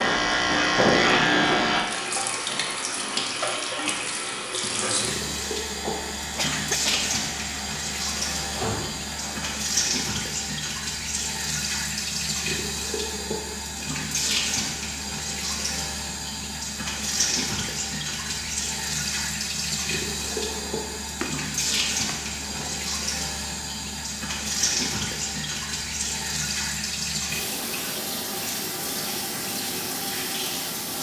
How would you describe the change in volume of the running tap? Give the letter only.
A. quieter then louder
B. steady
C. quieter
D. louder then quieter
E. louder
B.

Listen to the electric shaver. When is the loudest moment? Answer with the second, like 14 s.
1 s.